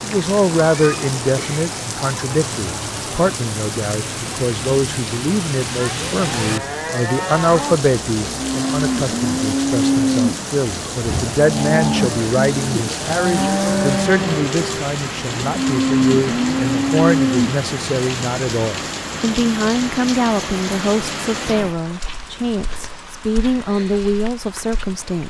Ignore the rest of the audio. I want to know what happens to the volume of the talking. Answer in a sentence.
The loudness of the talking stays about the same.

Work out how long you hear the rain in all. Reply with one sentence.
The rain can be heard for 25 seconds in total.